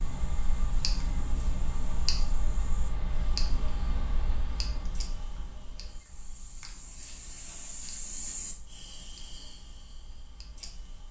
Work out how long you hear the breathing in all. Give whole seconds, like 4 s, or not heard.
not heard.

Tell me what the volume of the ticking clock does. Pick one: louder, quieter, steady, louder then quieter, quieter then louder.
quieter.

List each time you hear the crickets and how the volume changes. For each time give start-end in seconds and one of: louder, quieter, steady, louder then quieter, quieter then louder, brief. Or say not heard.
0.0-11.0 louder then quieter.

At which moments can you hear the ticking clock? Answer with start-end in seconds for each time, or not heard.
0.0-11.0.